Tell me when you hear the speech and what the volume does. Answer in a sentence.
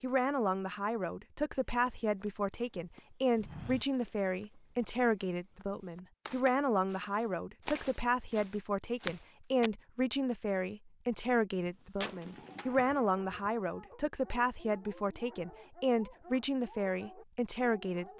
You can hear the speech from 0.0 to 18.1 s, at a steady volume.